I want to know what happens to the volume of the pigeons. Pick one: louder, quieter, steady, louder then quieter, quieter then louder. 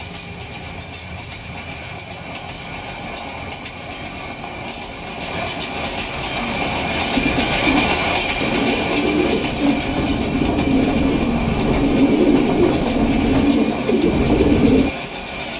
louder.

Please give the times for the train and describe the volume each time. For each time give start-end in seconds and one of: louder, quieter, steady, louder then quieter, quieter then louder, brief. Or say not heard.
0.0-15.5 louder then quieter.